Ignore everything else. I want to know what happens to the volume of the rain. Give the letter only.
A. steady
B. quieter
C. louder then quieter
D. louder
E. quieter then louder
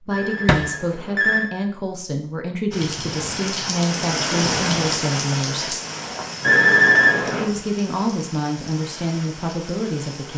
B.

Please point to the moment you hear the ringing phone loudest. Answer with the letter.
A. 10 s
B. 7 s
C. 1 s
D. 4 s
B.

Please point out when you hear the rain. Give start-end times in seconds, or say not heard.
2.7-10.3.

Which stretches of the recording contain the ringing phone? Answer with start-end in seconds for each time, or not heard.
0.1-1.5, 6.4-7.5.